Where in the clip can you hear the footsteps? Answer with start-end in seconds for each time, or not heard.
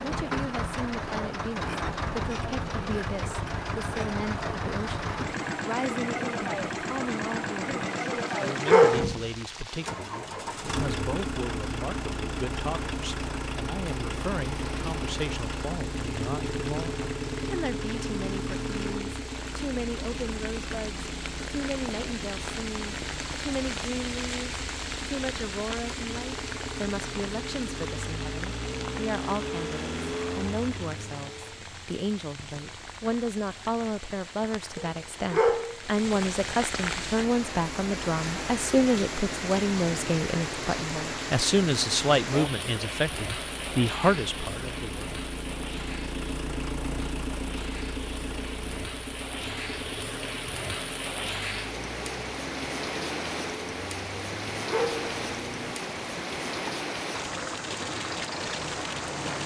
not heard.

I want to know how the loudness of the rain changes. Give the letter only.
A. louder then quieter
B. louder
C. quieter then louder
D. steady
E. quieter
B.